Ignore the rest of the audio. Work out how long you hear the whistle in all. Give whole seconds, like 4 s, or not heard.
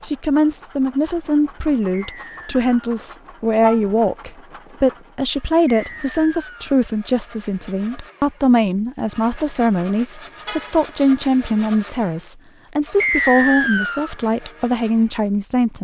3 s.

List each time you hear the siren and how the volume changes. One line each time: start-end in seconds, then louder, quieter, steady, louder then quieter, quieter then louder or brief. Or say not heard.
not heard.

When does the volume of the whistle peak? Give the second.
13 s.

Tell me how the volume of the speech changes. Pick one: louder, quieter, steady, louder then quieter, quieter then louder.
steady.